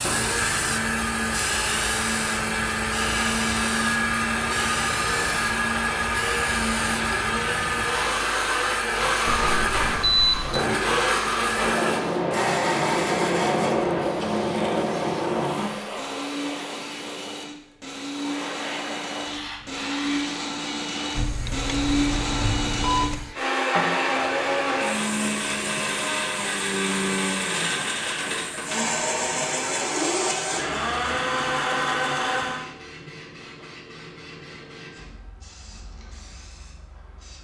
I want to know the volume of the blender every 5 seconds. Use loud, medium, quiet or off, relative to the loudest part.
loud, loud, loud, medium, loud, loud, loud, off.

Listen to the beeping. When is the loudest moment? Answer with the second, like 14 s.
10 s.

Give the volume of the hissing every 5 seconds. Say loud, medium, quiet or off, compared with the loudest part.
medium, medium, loud, medium, medium, quiet, quiet, quiet.